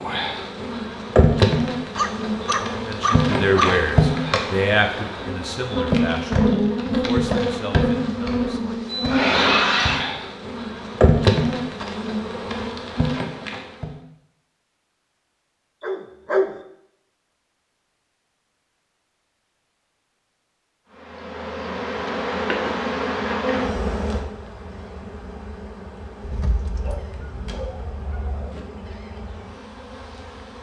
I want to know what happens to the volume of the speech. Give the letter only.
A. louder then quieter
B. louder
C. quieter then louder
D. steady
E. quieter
E.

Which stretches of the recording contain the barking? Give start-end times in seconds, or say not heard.
1.9-4.0, 15.8-16.6, 26.2-28.6.